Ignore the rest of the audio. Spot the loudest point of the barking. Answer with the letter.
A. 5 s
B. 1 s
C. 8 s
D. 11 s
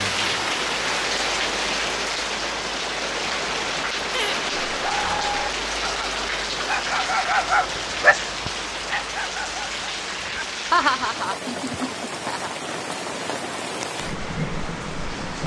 C.